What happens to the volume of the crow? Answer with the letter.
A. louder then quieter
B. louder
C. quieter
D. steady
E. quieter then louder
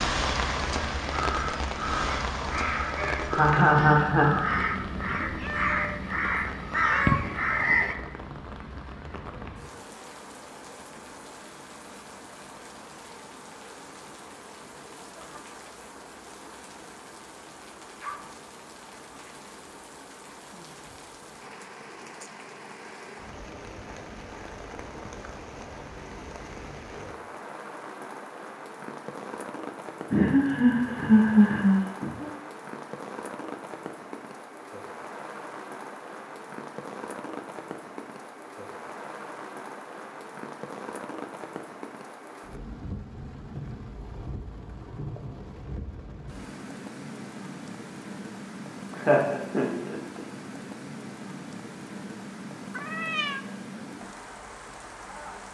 B.